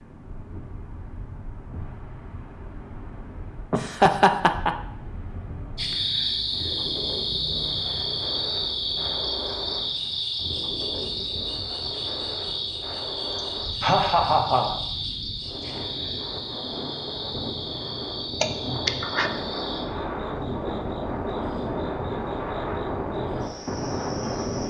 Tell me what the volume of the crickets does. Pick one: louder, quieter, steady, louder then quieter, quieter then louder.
quieter.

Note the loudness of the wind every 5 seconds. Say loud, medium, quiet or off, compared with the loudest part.
quiet, medium, medium, medium, loud.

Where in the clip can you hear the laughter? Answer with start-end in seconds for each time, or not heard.
3.7-4.7, 13.3-14.8, 18.4-19.3.